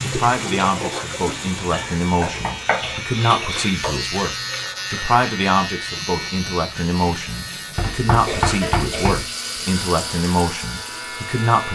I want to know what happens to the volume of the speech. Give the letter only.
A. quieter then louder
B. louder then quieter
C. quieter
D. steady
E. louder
D.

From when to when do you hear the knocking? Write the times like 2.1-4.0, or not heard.
2.2-4.0, 7.8-9.2.